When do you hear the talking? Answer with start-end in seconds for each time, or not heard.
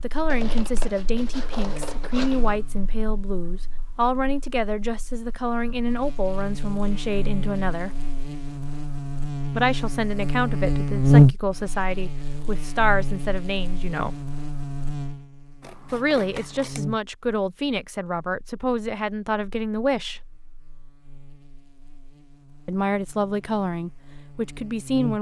0.0-8.1, 9.6-14.2, 15.9-20.2, 22.6-25.1.